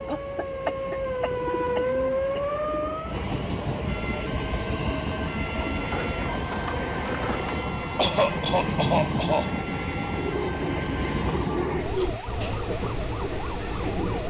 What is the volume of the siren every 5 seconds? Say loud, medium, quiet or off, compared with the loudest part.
loud, medium, medium.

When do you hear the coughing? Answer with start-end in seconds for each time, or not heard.
0.1-2.4, 8.0-9.6.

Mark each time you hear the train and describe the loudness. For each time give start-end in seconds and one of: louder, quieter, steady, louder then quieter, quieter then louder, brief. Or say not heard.
0.0-14.2 louder.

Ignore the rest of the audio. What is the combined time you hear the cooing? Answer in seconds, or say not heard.
6 s.